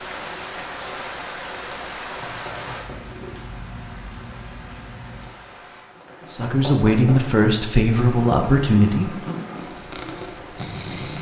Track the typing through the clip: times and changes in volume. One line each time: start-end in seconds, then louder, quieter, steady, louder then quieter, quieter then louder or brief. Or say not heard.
not heard.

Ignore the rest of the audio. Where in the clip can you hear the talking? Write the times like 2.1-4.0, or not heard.
6.2-9.3.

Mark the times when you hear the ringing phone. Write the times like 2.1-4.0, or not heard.
not heard.